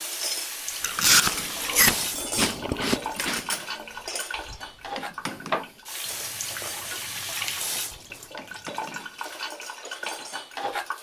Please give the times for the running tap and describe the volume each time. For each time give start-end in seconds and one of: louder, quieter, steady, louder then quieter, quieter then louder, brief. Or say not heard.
0.0-10.9 steady.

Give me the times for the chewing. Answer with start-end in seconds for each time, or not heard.
0.8-3.4, 6.5-8.5.